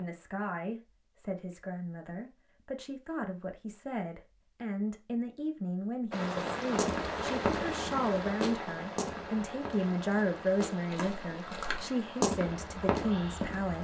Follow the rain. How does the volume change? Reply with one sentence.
The volume of the rain goes down.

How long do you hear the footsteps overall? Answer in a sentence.
The footsteps can be heard for 7 seconds in total.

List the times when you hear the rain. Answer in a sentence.
The rain can be heard from 6.1 to 13.8 s.